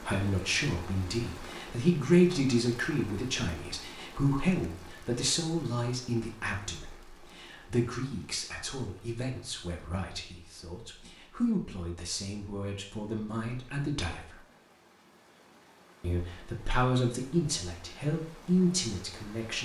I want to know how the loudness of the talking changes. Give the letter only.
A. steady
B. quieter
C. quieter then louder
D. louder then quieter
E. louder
C.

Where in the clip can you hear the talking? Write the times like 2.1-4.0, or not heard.
0.0-14.3, 16.0-19.6.